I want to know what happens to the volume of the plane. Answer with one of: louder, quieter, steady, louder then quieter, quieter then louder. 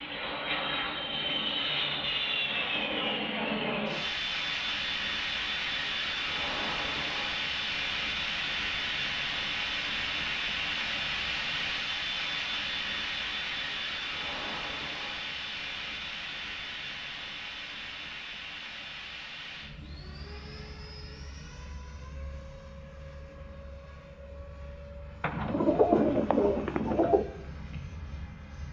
quieter.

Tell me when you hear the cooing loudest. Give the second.
26 s.